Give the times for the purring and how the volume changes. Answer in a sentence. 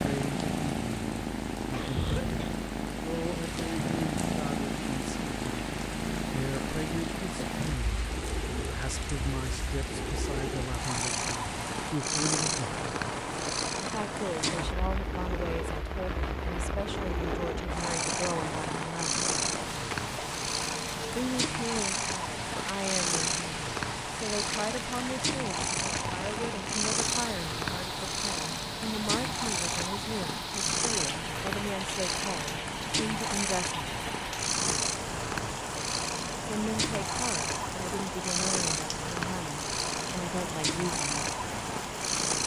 The purring can be heard from 0.0 to 42.4 s, at a steady volume.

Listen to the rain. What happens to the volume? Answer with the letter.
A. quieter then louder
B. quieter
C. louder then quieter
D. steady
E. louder
D.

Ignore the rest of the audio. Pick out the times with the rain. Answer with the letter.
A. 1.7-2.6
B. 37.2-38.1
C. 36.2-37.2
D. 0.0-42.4
D.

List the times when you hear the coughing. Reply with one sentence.
You can hear the coughing from 1.7 to 2.6 s.